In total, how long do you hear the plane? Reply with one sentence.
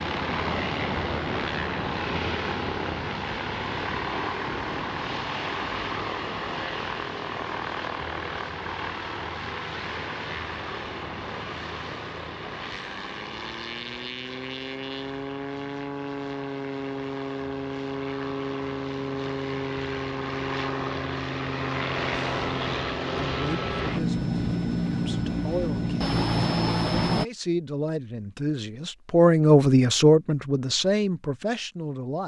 You can hear the plane for 27 seconds altogether.